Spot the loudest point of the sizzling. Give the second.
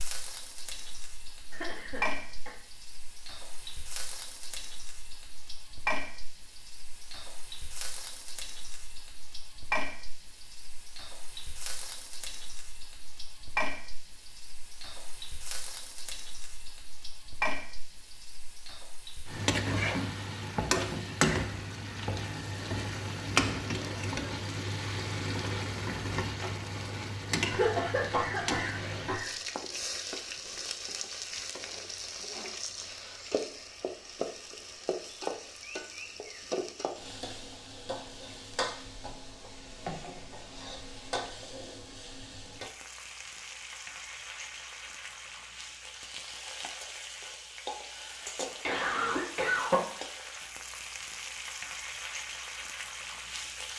21 s.